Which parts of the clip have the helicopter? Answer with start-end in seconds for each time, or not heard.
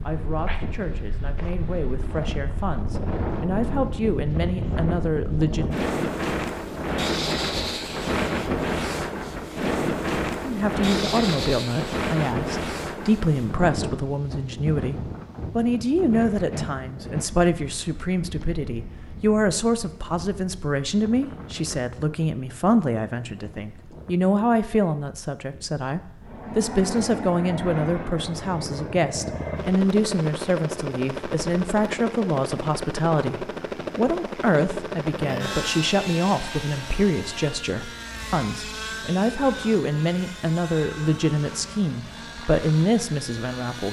26.2-43.8.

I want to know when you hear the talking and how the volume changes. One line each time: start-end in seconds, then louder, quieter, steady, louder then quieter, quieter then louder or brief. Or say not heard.
0.0-5.7 louder
10.4-43.8 steady.